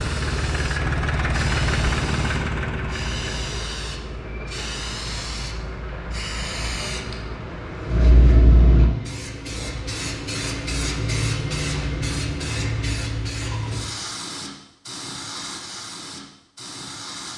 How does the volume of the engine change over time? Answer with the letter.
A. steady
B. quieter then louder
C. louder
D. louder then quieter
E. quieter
E.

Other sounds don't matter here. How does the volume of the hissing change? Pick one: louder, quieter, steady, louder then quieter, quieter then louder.
louder then quieter.